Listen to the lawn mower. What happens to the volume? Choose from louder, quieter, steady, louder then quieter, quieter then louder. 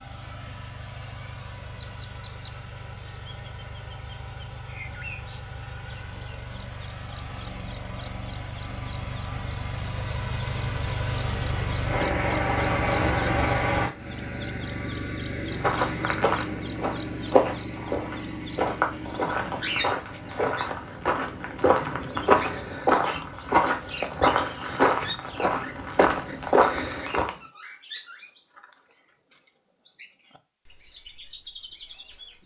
louder then quieter.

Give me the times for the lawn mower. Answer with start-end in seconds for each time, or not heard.
0.0-22.8.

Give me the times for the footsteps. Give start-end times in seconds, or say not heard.
15.6-27.3.